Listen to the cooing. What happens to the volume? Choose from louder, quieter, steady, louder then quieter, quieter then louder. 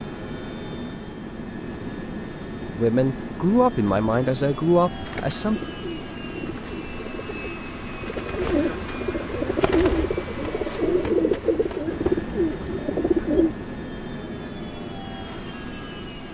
louder.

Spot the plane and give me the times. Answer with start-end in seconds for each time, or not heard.
0.0-16.2.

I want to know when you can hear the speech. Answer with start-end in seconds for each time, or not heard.
2.6-5.6.